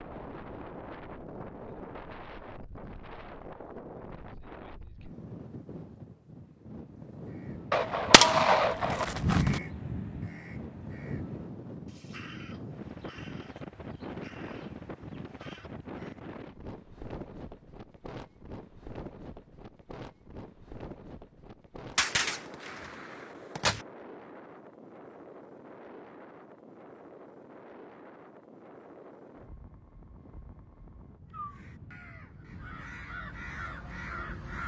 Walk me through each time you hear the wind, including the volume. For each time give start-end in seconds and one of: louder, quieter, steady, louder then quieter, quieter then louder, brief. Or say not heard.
0.0-34.6 quieter.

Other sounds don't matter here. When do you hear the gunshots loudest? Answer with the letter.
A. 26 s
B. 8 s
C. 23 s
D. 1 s
B.